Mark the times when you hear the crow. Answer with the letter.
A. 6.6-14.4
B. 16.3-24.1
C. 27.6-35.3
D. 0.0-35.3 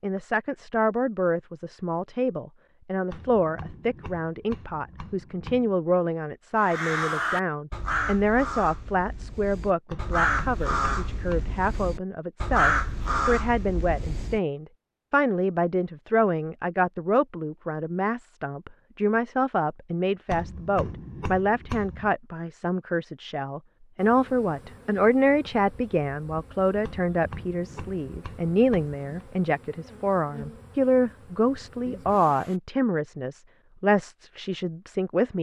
A.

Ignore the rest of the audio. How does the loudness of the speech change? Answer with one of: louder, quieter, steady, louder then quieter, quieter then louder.
steady.